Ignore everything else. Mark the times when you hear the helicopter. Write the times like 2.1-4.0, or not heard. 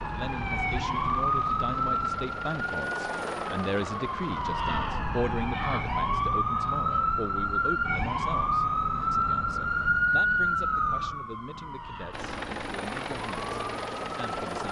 0.1-4.8, 12.1-14.6.